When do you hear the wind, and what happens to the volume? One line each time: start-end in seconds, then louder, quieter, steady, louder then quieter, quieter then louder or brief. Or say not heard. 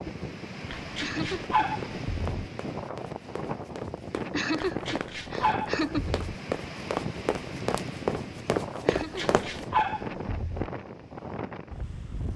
0.0-12.3 steady.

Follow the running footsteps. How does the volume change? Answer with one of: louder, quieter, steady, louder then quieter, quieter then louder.
louder.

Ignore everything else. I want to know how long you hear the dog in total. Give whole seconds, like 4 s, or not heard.
5 s.